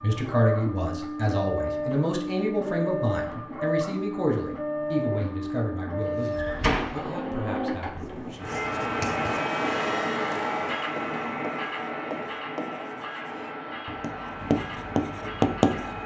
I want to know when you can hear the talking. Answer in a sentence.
The talking can be heard from 0.0 to 8.5 s.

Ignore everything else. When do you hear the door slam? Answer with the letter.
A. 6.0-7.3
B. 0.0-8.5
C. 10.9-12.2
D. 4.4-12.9
A.